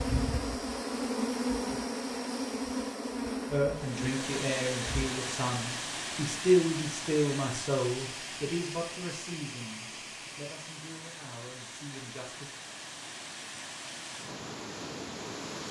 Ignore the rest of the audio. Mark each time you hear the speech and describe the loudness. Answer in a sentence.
The speech can be heard from 3.5 to 12.5 s, getting louder then quieter.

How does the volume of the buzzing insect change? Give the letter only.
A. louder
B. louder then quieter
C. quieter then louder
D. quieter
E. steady
D.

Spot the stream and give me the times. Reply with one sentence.
The stream can be heard from 3.8 to 15.6 s.